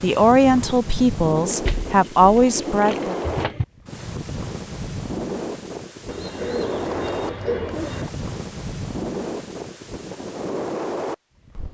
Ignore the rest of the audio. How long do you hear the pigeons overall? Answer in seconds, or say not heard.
4 s.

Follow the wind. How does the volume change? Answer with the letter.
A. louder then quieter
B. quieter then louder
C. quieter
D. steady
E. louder
D.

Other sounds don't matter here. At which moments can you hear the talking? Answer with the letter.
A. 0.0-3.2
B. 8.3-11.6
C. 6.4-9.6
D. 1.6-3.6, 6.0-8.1
A.